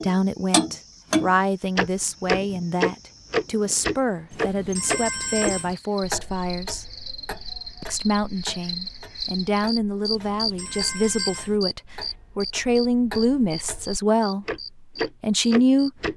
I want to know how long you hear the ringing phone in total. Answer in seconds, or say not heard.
3 s.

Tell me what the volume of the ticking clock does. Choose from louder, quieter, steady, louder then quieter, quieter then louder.
quieter then louder.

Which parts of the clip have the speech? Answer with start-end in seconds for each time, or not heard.
0.0-6.8, 7.8-14.4, 15.2-15.9.